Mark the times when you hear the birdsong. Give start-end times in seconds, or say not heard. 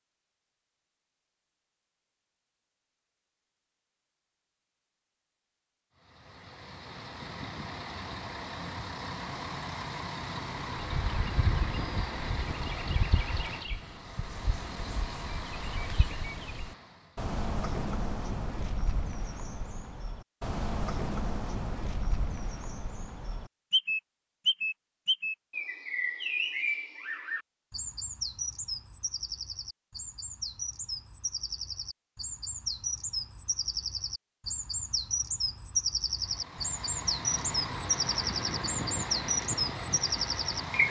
10.8-40.8.